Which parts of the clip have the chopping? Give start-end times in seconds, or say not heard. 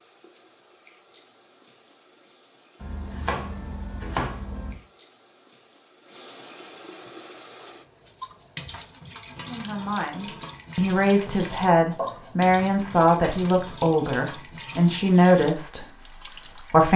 2.8-4.8, 11.2-12.8.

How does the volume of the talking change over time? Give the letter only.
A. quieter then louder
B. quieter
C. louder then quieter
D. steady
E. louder
D.